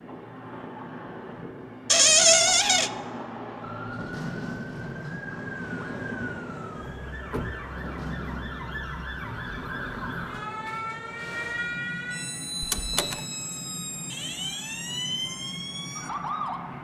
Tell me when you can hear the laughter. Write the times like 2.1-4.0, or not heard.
not heard.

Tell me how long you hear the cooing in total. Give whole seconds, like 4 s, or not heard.
not heard.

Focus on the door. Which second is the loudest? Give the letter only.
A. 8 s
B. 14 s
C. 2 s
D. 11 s
C.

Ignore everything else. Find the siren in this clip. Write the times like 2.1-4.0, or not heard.
3.6-16.7.